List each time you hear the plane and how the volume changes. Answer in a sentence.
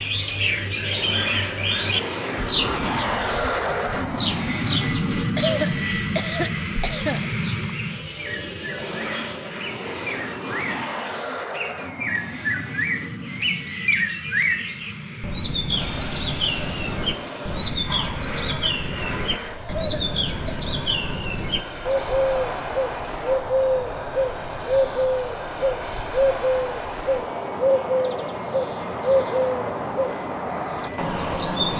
The plane can be heard from 0.0 to 31.7 s, getting quieter.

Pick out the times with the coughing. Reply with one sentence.
The coughing can be heard from 5.3 to 7.7 s and from 19.6 to 20.7 s.